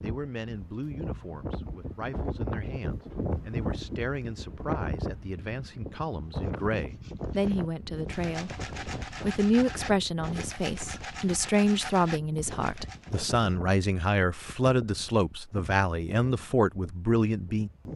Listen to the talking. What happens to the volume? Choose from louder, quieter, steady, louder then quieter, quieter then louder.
louder.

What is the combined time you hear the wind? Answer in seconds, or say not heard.
18 s.